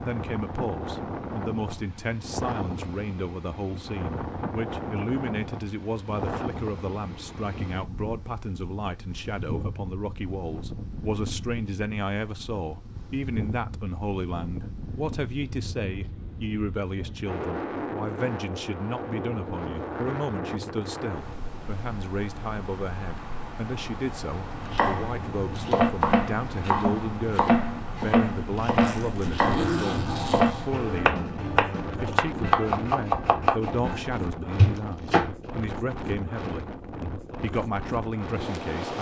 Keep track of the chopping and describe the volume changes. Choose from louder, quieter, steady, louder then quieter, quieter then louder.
steady.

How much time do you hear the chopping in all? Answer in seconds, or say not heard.
11 s.